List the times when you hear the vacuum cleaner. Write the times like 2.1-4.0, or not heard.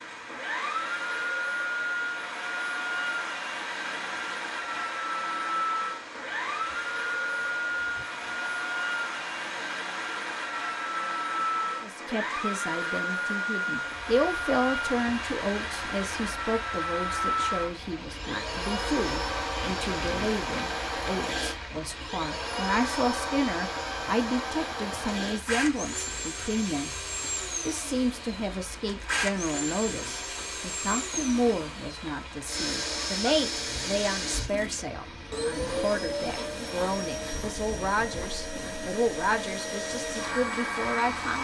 0.1-41.3.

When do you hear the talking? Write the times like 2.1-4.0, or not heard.
11.8-26.9, 27.6-41.3.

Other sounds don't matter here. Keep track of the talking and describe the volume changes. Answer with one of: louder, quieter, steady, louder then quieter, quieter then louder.
steady.